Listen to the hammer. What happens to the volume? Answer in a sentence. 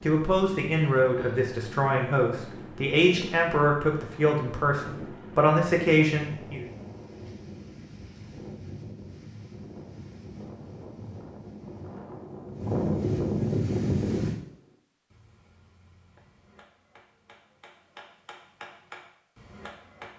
The loudness of the hammer goes up.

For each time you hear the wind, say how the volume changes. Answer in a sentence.
You can hear the wind from 0.0 to 14.3 s, getting louder.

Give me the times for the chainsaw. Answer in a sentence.
The chainsaw can't be heard in this clip.